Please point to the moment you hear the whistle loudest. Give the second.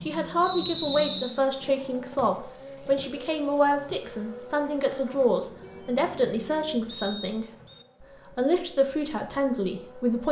1 s.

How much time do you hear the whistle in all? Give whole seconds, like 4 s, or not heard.
2 s.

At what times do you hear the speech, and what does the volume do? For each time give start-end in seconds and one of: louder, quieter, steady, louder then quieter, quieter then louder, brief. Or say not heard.
0.1-10.2 steady.